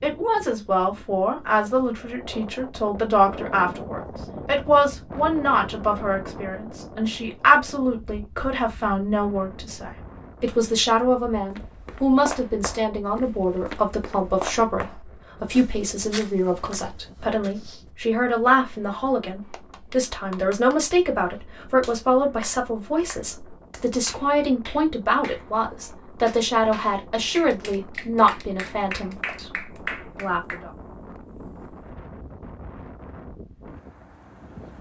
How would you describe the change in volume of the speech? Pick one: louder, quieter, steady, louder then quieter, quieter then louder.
steady.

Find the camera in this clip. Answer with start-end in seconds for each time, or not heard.
not heard.